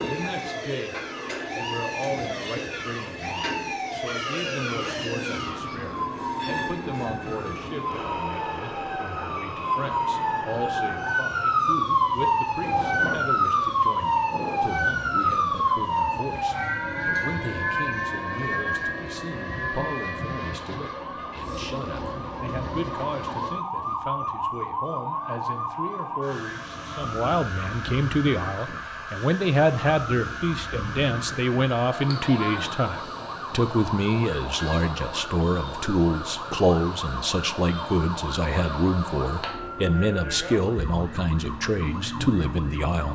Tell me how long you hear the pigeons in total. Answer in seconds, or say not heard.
not heard.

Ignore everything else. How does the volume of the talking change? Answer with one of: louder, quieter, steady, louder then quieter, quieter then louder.
louder.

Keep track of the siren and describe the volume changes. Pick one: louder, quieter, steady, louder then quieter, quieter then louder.
louder then quieter.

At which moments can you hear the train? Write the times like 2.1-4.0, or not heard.
0.0-23.6.